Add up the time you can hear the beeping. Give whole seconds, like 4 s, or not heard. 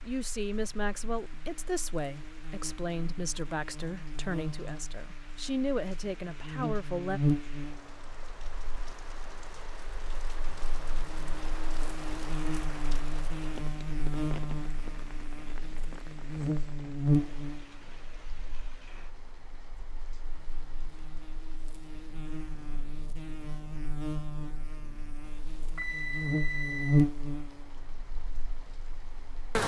2 s.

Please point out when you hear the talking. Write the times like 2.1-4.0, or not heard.
0.0-7.2.